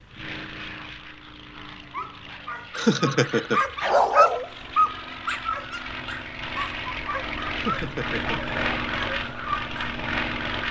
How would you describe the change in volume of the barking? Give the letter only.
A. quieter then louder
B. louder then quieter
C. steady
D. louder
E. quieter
B.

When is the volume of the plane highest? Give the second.
9 s.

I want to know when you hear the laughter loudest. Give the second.
3 s.